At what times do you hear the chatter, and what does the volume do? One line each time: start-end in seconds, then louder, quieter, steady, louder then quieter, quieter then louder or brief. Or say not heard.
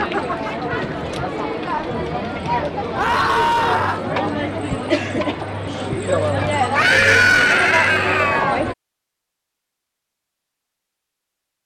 0.0-8.8 steady.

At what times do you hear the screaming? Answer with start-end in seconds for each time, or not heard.
3.0-4.0, 6.8-8.6.